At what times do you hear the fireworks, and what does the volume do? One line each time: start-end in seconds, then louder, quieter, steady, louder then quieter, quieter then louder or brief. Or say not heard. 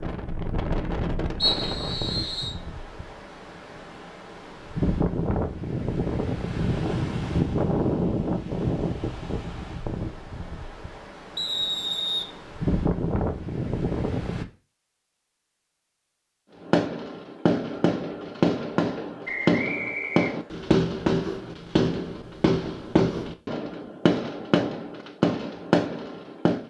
16.6-26.6 steady.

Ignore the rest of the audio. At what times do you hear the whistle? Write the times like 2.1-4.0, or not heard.
1.4-2.5, 11.3-12.3, 19.2-20.5.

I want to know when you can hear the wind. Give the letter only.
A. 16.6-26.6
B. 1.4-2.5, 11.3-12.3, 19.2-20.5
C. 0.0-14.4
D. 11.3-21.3
C.